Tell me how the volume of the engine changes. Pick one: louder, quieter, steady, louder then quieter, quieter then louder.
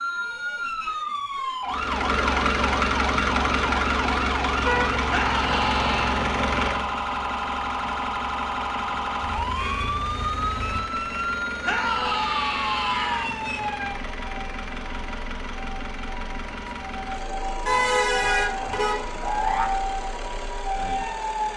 quieter.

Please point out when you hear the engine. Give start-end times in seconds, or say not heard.
1.6-21.5.